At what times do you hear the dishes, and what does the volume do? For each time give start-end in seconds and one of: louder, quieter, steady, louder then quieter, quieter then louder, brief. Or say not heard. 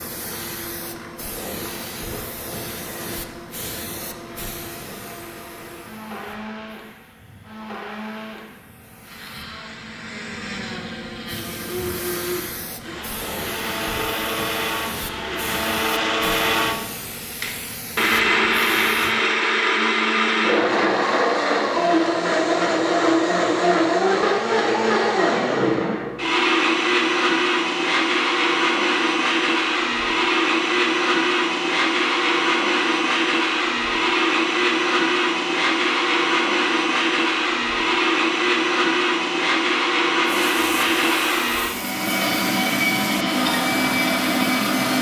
not heard.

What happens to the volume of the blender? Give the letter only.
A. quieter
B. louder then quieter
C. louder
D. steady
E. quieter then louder
C.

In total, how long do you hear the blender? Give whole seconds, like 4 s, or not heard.
45 s.